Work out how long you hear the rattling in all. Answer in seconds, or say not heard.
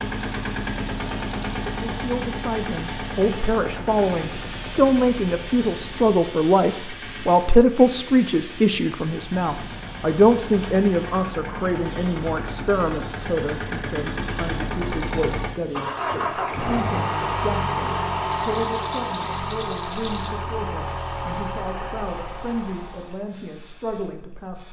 2 s.